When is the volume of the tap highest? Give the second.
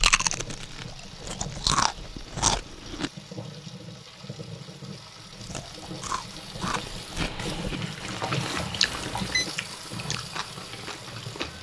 9 s.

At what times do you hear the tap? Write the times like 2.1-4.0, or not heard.
0.0-11.5.